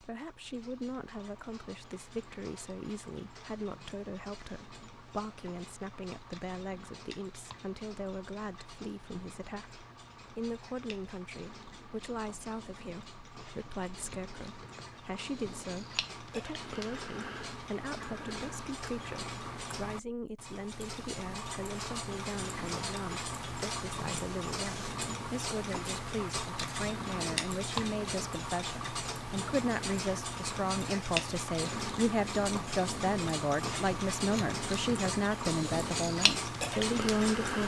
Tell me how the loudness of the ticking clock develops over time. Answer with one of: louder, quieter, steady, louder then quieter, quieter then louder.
louder.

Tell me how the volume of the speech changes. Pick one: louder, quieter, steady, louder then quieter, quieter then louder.
louder.